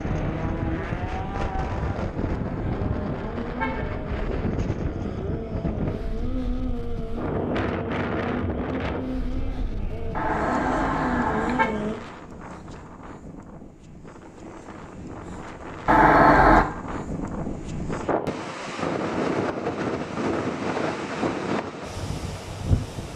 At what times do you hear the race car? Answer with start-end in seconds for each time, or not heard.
0.0-12.0.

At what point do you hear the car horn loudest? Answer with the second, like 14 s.
16 s.